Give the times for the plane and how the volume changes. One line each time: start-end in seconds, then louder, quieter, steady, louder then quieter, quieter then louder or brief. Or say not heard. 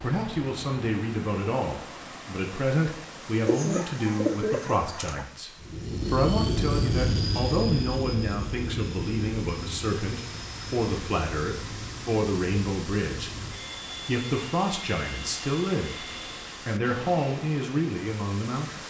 5.5-16.7 quieter.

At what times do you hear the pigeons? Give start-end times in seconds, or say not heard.
3.5-5.2.